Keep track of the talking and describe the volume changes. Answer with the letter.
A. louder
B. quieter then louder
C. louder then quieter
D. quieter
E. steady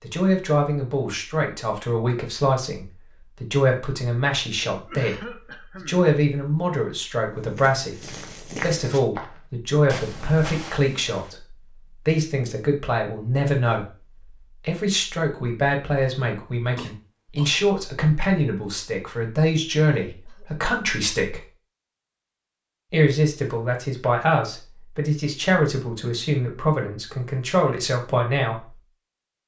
E.